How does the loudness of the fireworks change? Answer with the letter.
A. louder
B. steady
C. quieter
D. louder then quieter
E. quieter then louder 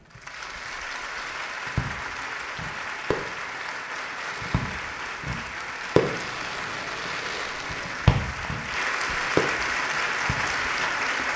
A.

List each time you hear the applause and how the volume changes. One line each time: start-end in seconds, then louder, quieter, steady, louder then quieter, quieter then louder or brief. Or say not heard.
0.0-11.3 louder.